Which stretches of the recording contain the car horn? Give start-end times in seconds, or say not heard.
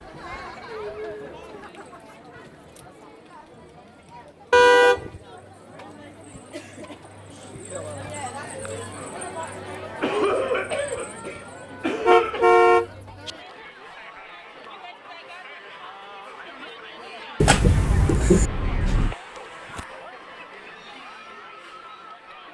4.5-5.2, 12.0-13.3, 17.4-19.1.